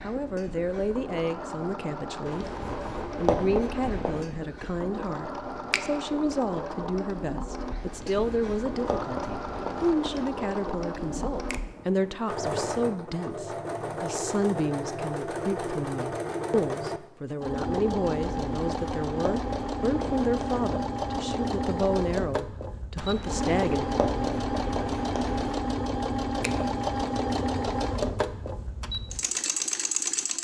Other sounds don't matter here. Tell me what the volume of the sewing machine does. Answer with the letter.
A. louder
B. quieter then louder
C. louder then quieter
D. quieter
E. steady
A.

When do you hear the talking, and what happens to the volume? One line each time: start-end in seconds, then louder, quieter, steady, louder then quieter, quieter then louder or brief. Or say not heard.
0.0-2.5 brief
3.1-23.9 steady.